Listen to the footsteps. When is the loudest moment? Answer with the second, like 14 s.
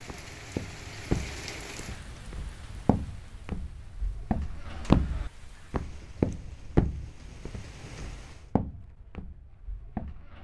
5 s.